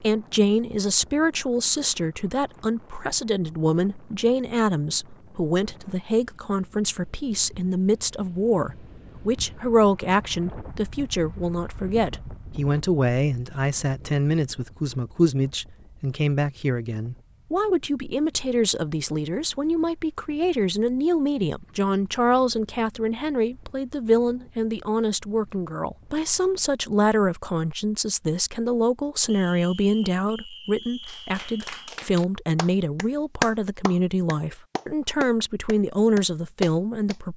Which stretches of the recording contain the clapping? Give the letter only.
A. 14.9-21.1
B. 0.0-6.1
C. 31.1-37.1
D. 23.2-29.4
C.